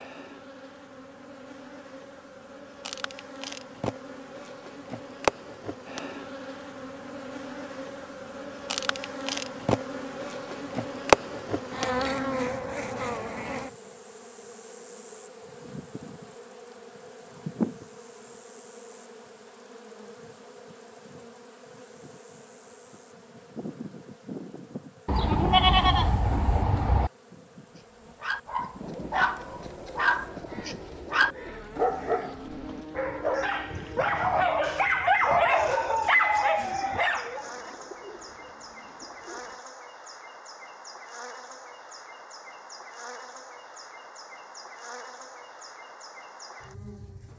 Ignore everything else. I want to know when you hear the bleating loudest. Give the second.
26 s.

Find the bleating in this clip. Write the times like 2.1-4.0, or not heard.
25.1-27.1.